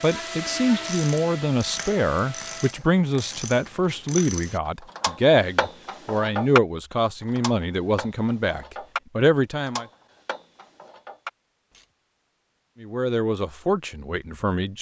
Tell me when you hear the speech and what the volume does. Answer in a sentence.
The speech can be heard from 0.0 to 9.8 s, at a steady volume; and briefly from 12.8 to 14.7 s.